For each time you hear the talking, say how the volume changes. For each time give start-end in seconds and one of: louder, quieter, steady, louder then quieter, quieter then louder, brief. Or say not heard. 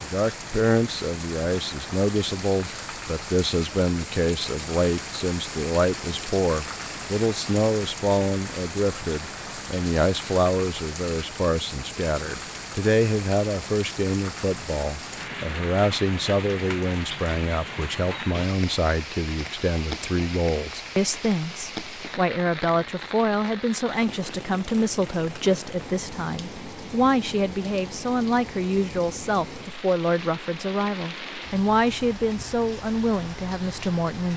0.0-34.3 steady.